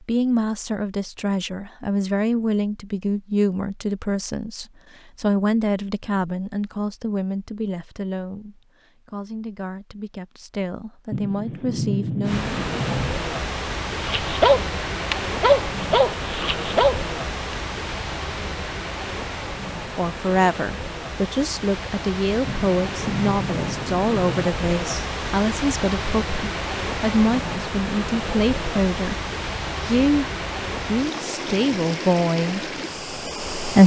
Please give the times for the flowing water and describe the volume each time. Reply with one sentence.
The flowing water can be heard from 12.2 to 33.8 s, at a steady volume.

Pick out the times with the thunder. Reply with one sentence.
You can hear the thunder from 11.1 to 13.2 s and from 22.4 to 24.5 s.